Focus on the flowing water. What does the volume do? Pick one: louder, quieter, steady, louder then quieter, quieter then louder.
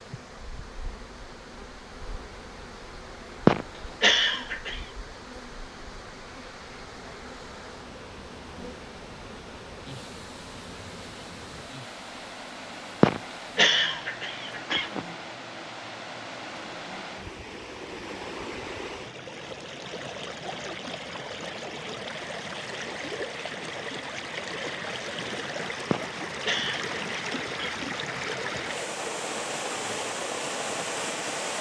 louder.